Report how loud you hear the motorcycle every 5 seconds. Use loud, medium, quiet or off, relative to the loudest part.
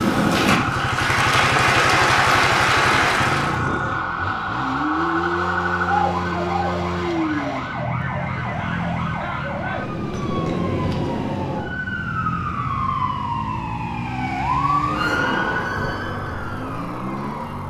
loud, loud, loud, medium.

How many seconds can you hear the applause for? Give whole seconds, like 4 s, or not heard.
4 s.